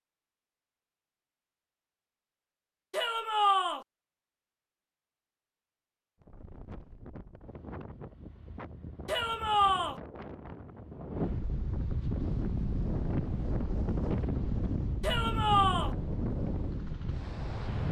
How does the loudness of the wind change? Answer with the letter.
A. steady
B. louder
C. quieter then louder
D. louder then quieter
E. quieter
B.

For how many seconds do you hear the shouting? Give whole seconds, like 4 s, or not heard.
3 s.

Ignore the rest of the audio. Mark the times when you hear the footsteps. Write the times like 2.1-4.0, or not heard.
not heard.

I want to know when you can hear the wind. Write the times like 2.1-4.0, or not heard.
6.2-17.8.